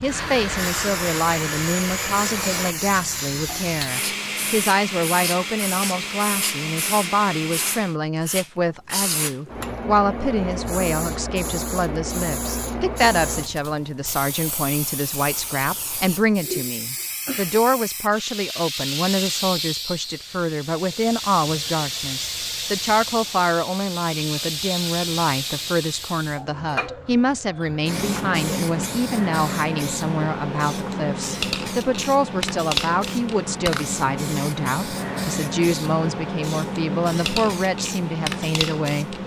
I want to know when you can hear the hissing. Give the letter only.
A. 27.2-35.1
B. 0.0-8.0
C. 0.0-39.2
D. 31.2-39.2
C.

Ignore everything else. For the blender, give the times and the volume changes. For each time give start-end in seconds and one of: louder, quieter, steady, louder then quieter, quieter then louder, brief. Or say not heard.
0.0-8.0 steady.